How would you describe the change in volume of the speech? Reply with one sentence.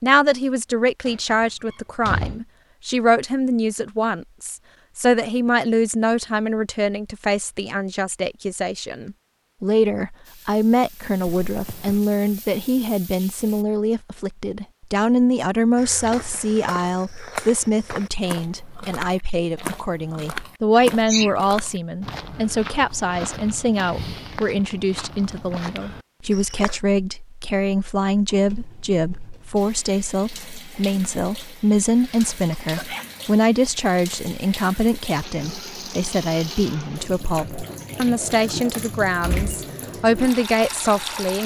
The loudness of the speech stays about the same.